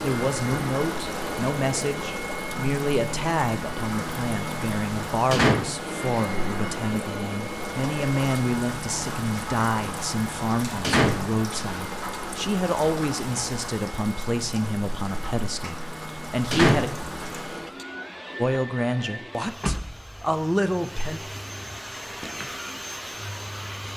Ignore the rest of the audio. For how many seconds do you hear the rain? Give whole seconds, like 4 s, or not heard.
18 s.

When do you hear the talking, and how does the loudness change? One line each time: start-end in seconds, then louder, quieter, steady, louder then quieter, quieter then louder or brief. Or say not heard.
0.0-16.9 steady
18.4-21.2 brief.